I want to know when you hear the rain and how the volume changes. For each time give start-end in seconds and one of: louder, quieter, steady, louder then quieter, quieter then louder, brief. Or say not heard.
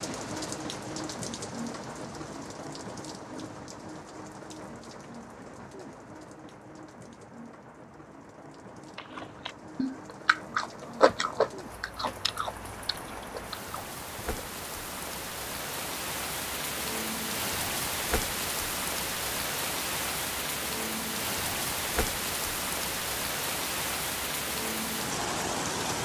0.0-25.9 quieter then louder.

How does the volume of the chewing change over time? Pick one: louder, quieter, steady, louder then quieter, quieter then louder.
louder then quieter.